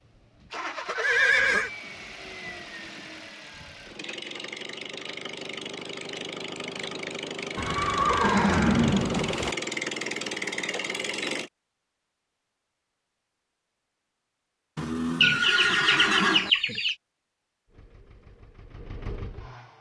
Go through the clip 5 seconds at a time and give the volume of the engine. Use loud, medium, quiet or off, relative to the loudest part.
medium, loud, loud, quiet.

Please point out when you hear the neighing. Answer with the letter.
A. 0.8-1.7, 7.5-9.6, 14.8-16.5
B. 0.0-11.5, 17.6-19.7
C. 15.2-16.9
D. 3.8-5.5
A.